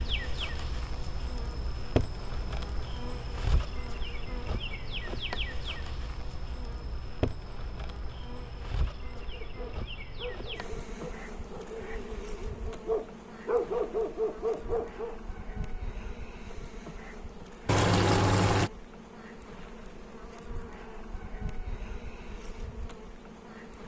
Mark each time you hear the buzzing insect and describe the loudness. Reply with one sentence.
The buzzing insect can be heard from 0.0 to 23.8 s, getting quieter.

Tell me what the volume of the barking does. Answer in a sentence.
The loudness of the barking goes up.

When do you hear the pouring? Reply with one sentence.
The pouring can be heard from 17.6 to 18.7 s.